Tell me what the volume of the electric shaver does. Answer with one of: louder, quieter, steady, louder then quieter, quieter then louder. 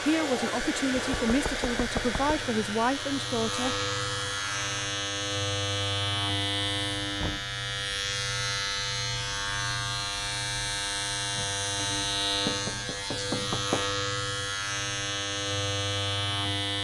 louder.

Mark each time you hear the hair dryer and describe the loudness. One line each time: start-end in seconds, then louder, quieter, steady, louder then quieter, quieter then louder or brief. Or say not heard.
0.0-4.7 quieter.